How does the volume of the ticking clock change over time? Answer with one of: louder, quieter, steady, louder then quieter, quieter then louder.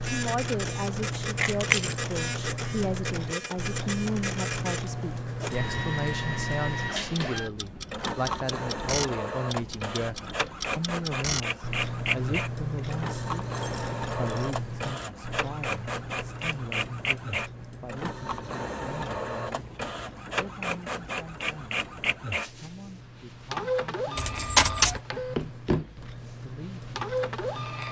quieter.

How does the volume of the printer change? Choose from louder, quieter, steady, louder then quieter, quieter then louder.
steady.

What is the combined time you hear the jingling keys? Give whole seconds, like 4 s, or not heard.
3 s.